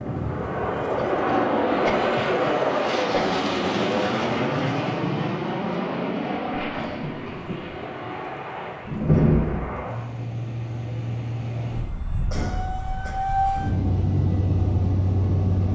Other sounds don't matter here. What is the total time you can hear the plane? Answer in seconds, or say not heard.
16 s.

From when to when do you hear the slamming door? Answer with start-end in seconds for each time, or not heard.
8.8-9.8.